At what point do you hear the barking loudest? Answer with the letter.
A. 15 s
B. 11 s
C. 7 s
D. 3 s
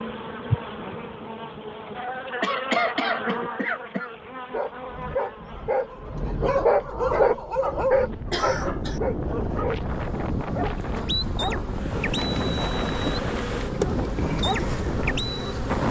C.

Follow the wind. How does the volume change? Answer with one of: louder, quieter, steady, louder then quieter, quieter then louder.
louder.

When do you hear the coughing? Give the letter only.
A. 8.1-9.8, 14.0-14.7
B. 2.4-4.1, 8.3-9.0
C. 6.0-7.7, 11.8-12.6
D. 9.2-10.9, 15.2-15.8
B.